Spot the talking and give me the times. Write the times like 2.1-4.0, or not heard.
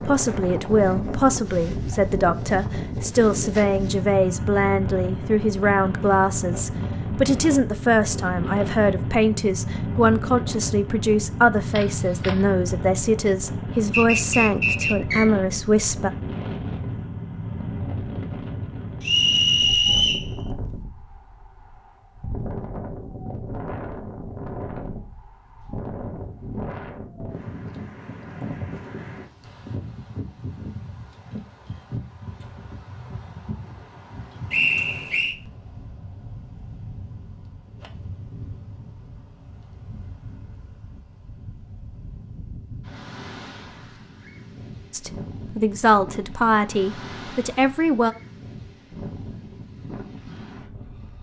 0.1-16.1, 44.9-48.1.